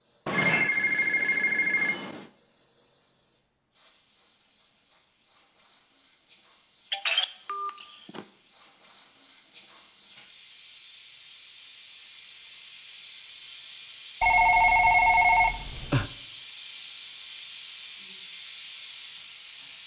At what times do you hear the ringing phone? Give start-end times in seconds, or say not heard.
0.2-2.2, 6.9-8.2, 14.2-16.1.